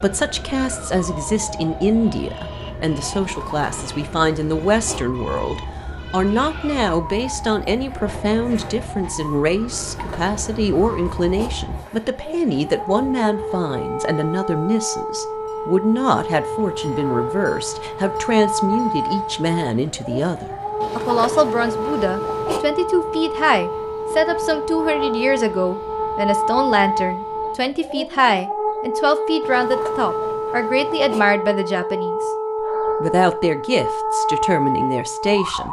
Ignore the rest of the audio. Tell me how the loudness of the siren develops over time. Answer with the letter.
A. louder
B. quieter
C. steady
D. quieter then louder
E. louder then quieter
A.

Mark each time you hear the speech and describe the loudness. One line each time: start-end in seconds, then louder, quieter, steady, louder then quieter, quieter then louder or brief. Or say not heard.
0.0-32.3 steady
33.0-35.6 brief.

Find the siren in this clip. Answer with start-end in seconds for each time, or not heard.
0.0-35.6.